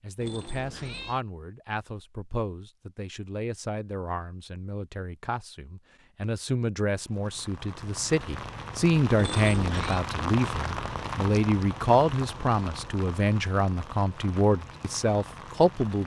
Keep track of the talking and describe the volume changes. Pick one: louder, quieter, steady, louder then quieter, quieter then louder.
louder.